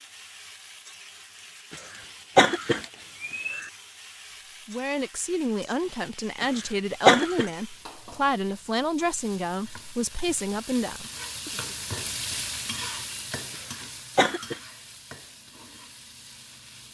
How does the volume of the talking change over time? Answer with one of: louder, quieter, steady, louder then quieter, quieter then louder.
steady.